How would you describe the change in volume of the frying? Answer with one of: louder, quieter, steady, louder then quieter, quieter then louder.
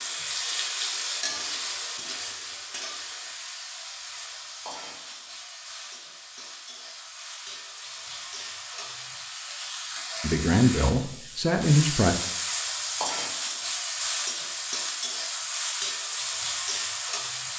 quieter then louder.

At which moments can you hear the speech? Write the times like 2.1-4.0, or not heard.
10.2-12.2.